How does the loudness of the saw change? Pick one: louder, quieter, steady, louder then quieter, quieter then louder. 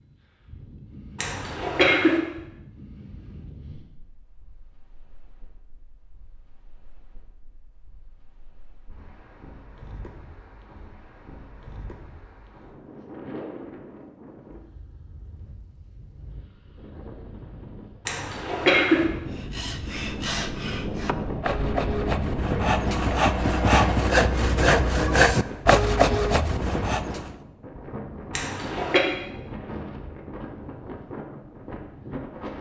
louder.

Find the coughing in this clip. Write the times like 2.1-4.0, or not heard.
1.1-2.2, 18.1-19.1, 28.3-29.0.